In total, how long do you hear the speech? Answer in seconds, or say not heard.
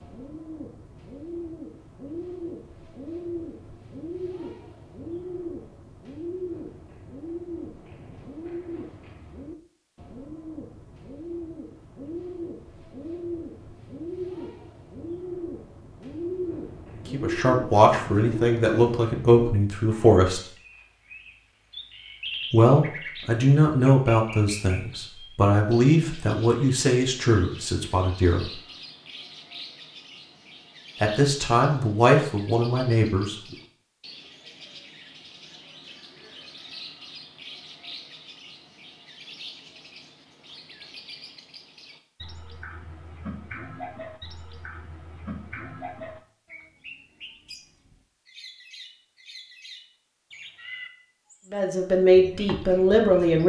14 s.